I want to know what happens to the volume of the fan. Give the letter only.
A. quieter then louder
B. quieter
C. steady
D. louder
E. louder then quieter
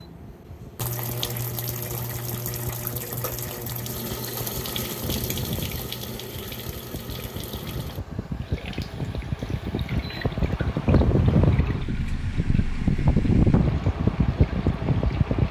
D.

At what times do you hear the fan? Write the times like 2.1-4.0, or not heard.
0.0-15.4.